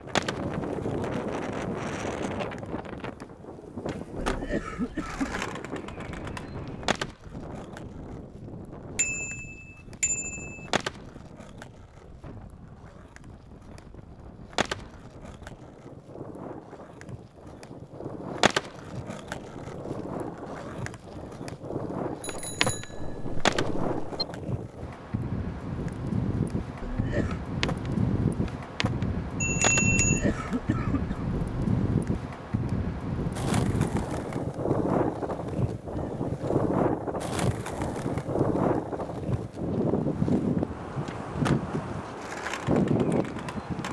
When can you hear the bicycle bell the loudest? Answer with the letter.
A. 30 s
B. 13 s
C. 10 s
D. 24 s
A.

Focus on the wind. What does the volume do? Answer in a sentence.
The loudness of the wind goes down, then up.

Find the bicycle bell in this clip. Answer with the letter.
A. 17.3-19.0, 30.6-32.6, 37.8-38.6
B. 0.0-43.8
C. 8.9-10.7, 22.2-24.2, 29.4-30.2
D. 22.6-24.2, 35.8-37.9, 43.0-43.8
C.